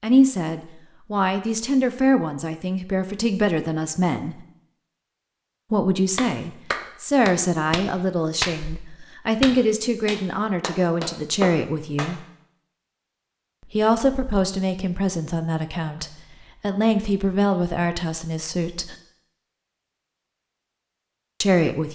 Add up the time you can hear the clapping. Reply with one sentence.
The clapping can be heard for 6 seconds in total.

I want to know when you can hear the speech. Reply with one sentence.
You can hear the speech from 0.0 to 4.5 s, from 5.7 to 12.2 s, from 13.7 to 18.9 s and from 21.4 to 21.9 s.